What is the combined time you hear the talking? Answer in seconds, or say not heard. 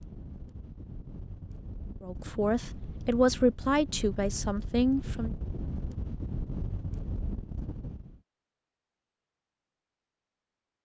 3 s.